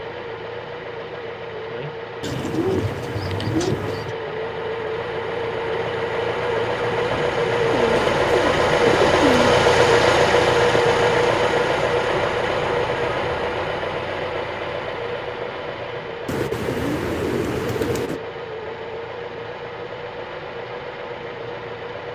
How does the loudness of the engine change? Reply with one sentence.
The volume of the engine goes up, then down.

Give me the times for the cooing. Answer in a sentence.
The cooing can be heard from 2.2 to 4.2 s, from 7.7 to 9.6 s and from 16.2 to 18.2 s.